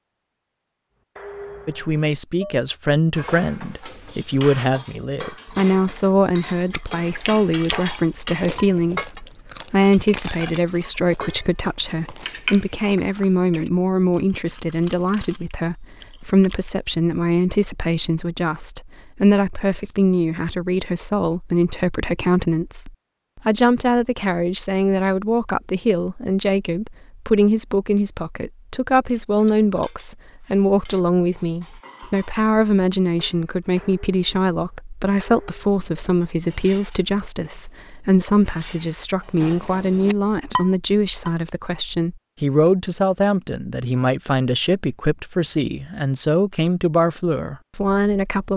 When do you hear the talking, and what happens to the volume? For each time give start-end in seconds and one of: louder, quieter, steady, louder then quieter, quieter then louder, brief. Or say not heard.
1.6-48.5 steady.